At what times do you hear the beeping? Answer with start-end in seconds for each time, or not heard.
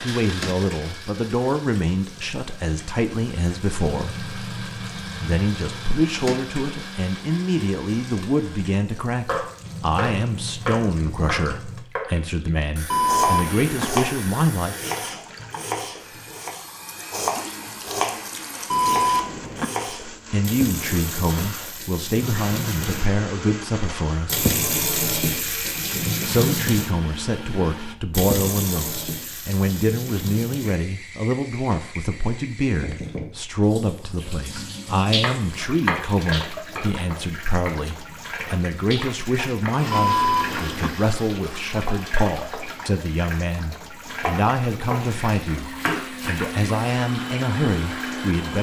12.9-13.8, 18.7-19.6, 39.9-40.9.